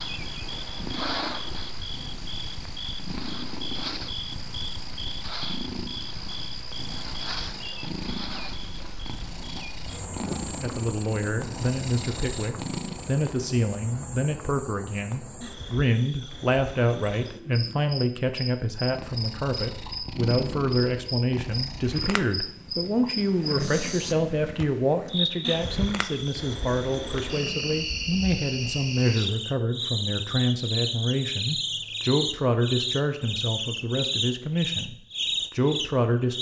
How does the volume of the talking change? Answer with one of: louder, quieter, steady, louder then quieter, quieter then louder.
steady.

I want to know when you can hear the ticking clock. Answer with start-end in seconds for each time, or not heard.
not heard.